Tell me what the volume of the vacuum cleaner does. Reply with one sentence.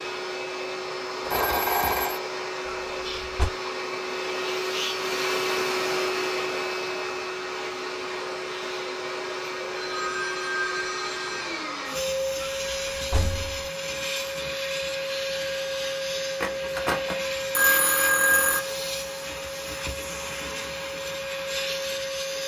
The volume of the vacuum cleaner stays about the same.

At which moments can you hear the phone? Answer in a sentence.
The phone can be heard from 1.2 to 2.2 s, from 9.8 to 11.6 s and from 16.4 to 18.6 s.